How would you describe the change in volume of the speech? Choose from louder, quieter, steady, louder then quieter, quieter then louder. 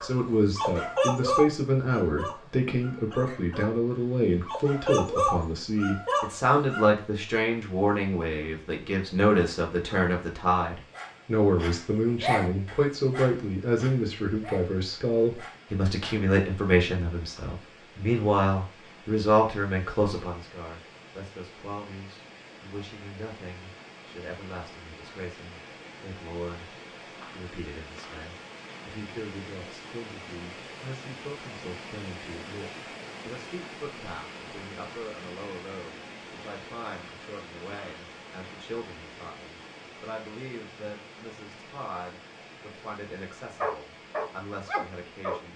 quieter.